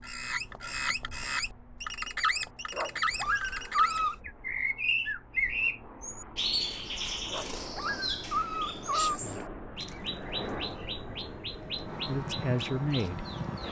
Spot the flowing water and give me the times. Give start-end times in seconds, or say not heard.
not heard.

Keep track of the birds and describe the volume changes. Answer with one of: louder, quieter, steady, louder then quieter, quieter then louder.
quieter.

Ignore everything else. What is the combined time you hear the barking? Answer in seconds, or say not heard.
3 s.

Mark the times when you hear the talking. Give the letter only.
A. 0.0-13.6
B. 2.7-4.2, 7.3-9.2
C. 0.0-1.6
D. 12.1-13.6
D.